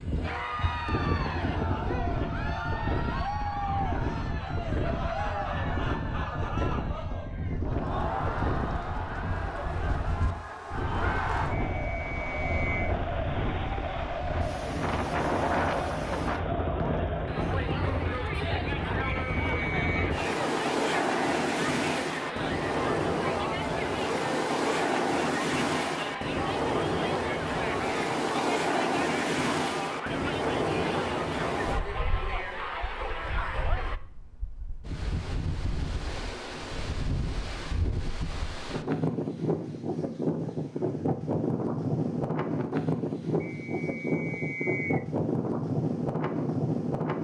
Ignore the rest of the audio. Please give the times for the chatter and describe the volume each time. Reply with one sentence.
You can hear the chatter from 0.1 to 34.0 s, at a steady volume.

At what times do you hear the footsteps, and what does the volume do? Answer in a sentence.
You can't hear the footsteps here.